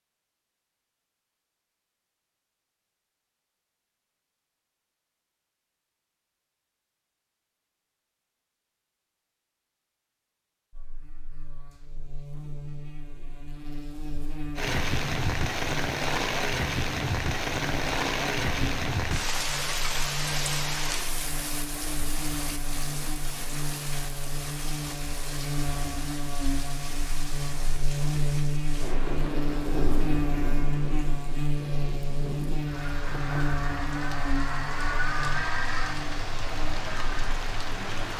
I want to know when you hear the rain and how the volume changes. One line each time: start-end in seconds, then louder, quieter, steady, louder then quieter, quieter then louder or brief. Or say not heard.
14.6-38.1 quieter then louder.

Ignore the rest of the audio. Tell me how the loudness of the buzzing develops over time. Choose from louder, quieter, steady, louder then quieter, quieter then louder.
louder.